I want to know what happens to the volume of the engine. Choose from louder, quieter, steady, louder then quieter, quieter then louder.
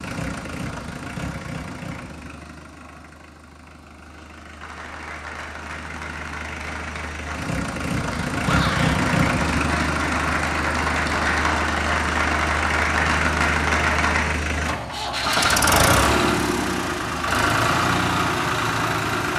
louder.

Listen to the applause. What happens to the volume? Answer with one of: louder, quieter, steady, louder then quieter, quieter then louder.
louder.